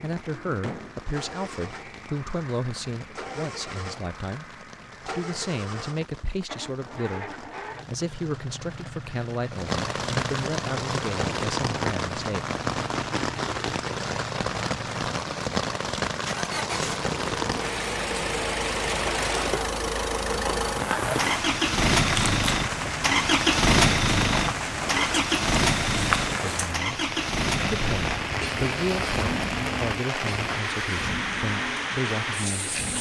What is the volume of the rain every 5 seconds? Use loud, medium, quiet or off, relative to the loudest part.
quiet, medium, loud, loud, loud, loud, loud.